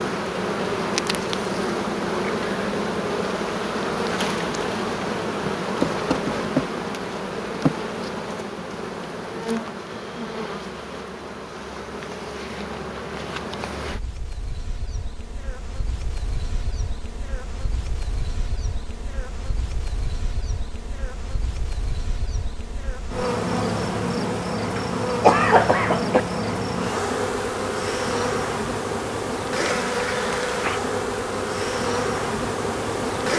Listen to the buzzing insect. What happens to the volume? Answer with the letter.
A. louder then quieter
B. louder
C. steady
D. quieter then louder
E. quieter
D.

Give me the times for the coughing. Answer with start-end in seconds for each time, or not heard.
24.8-26.2.